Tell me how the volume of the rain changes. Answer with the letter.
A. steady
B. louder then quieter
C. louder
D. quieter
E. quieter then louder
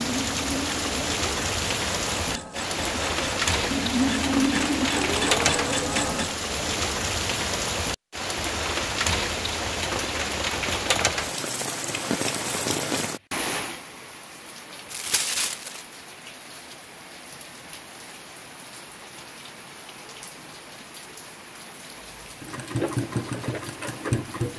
D.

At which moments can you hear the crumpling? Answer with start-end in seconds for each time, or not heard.
14.9-15.8.